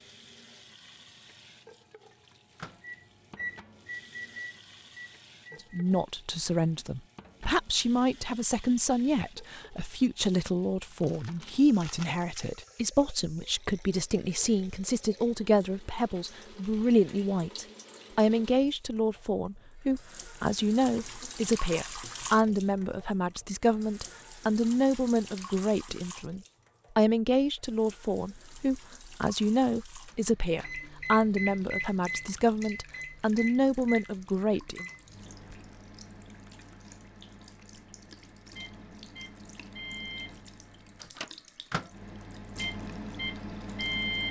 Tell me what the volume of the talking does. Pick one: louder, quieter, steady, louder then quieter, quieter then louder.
steady.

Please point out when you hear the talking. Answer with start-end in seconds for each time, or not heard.
5.7-34.9.